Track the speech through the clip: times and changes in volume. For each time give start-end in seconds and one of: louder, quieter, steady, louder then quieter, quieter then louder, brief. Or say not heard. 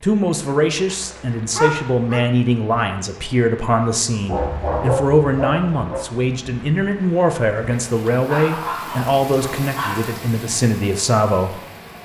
0.0-11.6 steady.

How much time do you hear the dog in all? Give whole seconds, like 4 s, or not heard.
5 s.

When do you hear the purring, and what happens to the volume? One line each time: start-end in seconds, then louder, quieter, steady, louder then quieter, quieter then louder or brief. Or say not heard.
not heard.